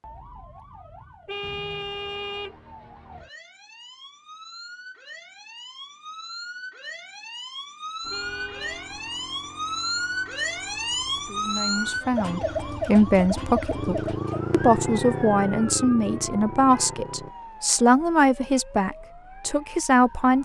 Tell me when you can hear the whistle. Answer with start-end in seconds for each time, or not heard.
not heard.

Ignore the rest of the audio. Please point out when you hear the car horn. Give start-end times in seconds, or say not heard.
1.2-2.5, 8.1-8.9, 16.7-17.8.